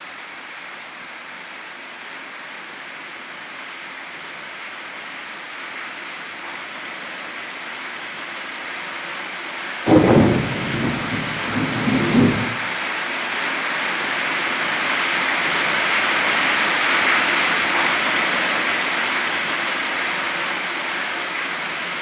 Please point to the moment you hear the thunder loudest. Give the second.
10 s.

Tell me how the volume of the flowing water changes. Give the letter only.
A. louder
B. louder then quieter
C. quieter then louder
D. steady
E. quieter
A.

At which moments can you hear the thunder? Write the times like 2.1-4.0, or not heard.
9.8-12.4.